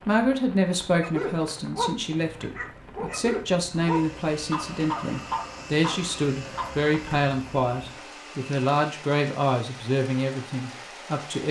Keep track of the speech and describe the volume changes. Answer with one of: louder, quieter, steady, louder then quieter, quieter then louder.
steady.